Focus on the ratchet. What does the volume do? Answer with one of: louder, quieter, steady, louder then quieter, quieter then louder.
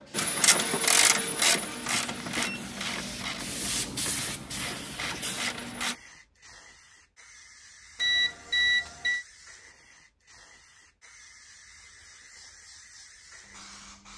quieter then louder.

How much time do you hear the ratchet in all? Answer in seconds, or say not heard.
6 s.